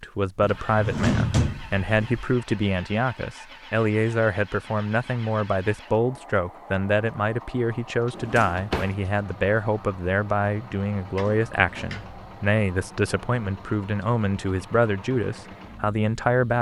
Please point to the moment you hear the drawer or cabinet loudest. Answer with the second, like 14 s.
1 s.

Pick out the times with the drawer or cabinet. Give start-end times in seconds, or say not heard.
0.4-2.3, 8.1-8.9, 11.2-12.2.